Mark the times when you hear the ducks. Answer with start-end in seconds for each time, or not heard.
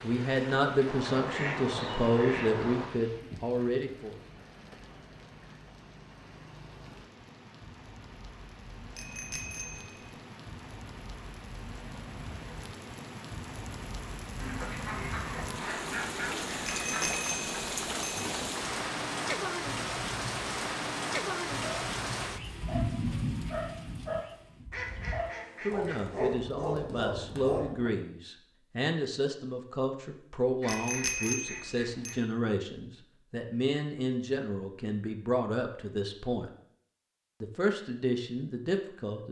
0.8-2.9, 14.3-17.2, 24.7-26.4, 30.6-32.2.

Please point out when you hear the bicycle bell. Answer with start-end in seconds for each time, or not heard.
8.9-10.1, 16.6-18.2, 30.6-32.2.